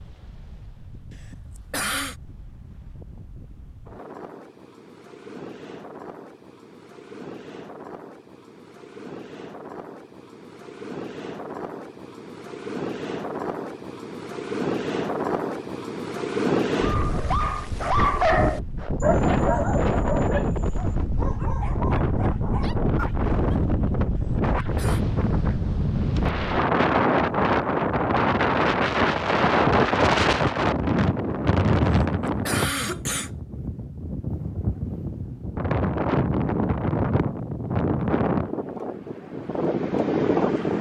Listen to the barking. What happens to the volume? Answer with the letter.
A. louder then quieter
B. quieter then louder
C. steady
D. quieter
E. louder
D.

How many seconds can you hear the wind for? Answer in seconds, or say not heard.
41 s.